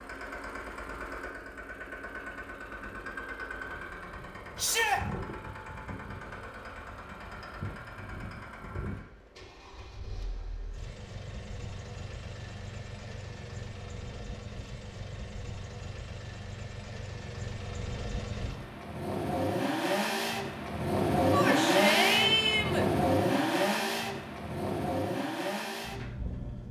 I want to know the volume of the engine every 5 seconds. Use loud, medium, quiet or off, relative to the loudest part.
quiet, quiet, quiet, medium, loud, medium.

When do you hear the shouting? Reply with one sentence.
The shouting can be heard from 4.5 to 5.0 s and from 21.3 to 22.9 s.